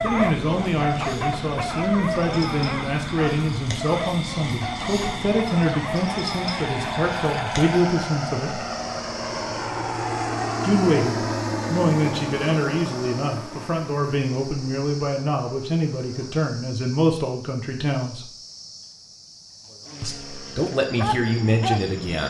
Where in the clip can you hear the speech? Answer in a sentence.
You can hear the speech from 0.0 to 8.6 s, from 10.6 to 18.3 s and from 20.0 to 22.2 s.